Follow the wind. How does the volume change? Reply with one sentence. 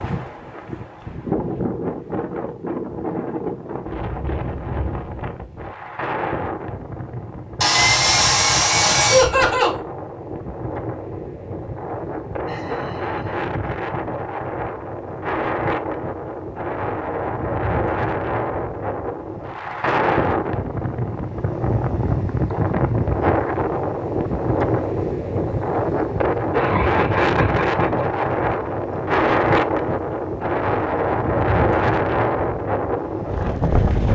The loudness of the wind goes up.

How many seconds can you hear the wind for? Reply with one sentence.
You can hear the wind for 34 seconds altogether.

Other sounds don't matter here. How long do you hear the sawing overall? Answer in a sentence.
You can hear the sawing for 2 seconds altogether.